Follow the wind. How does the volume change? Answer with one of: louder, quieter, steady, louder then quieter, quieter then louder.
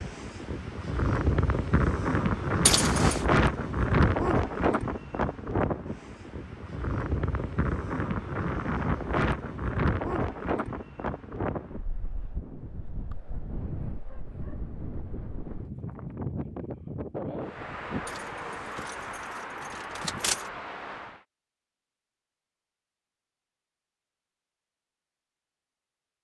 quieter.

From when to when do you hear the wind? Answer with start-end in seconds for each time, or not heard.
0.0-21.2.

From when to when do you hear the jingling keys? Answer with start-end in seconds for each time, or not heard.
2.6-3.2, 18.1-20.4.